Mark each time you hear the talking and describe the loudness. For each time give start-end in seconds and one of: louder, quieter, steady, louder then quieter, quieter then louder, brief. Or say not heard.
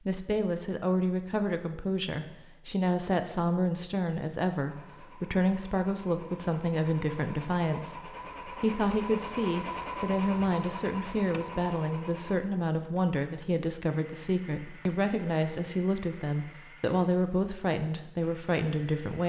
0.1-19.2 steady.